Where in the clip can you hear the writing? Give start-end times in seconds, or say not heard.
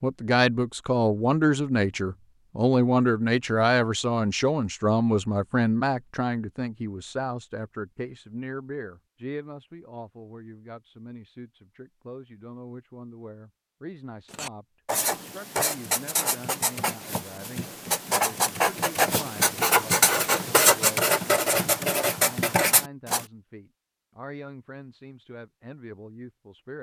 14.3-23.2.